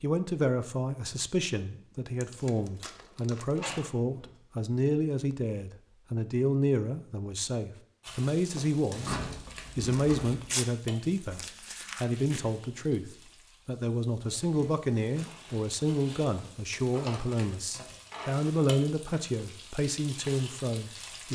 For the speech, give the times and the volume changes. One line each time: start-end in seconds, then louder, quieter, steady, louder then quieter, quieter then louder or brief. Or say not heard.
0.0-21.3 steady.